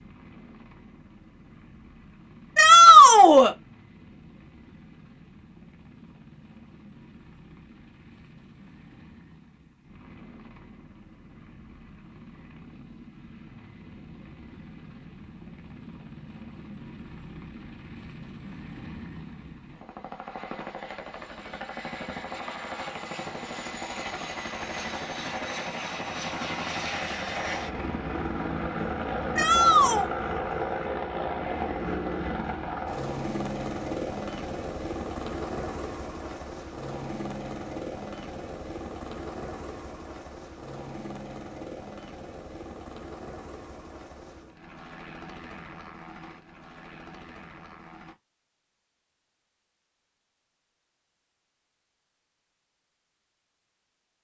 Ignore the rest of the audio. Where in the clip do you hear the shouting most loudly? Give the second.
3 s.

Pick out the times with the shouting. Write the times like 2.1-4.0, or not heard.
2.5-3.5, 29.4-30.1.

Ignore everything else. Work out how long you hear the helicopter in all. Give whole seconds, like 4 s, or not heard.
48 s.